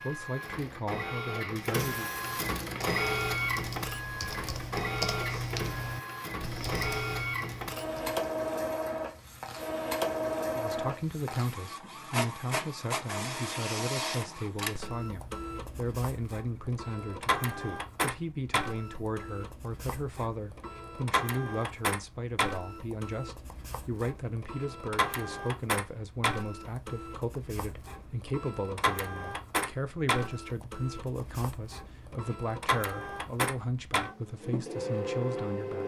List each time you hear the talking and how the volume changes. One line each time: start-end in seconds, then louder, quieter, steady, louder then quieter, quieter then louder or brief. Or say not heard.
0.0-2.1 brief
10.6-35.8 steady.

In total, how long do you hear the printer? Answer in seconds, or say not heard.
36 s.